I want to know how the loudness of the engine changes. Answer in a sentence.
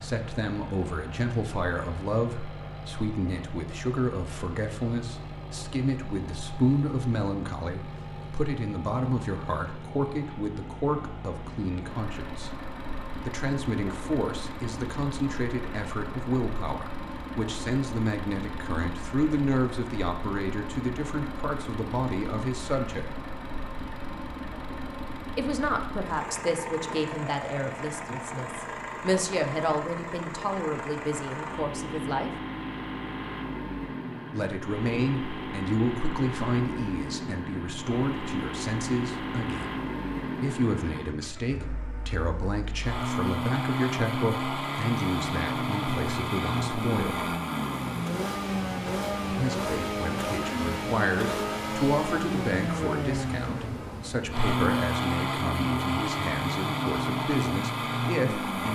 The volume of the engine goes up.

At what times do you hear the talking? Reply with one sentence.
You can hear the talking from 0.0 to 23.1 s, from 25.4 to 32.3 s, from 34.3 to 47.4 s and from 49.2 to 58.7 s.